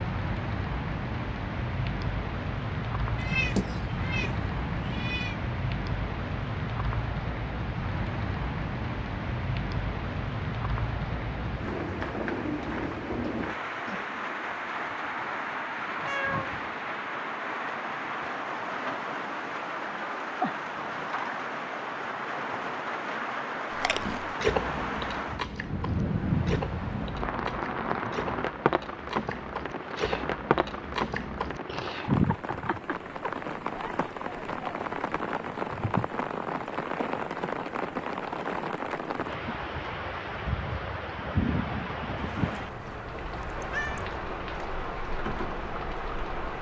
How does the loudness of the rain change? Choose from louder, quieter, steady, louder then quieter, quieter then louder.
steady.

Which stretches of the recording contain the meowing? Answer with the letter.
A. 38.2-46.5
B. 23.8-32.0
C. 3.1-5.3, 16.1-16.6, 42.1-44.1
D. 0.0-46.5
C.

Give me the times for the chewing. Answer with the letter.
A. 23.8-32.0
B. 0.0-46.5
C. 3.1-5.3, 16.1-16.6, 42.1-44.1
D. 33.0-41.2
A.